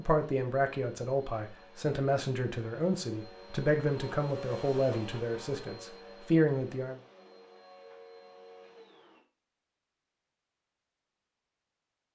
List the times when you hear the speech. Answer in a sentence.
You can hear the speech from 0.0 to 7.0 s.